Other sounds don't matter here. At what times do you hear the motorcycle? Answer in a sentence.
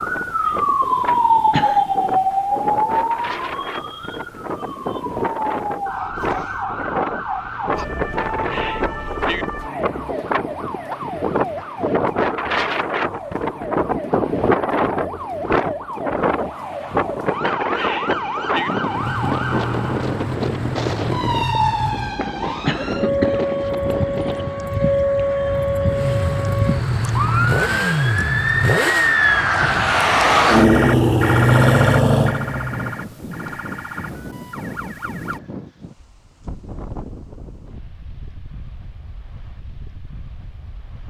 The motorcycle can be heard from 18.8 to 22.1 s and from 25.9 to 29.2 s.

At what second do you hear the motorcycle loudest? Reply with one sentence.
The loudest moment of the motorcycle is at 28 seconds.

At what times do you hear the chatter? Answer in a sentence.
The chatter can't be heard in this clip.